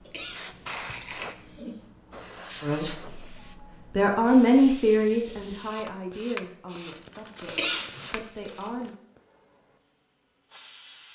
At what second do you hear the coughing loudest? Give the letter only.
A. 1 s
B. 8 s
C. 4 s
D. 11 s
B.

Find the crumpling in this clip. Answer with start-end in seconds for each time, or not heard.
0.7-1.4, 6.9-8.9.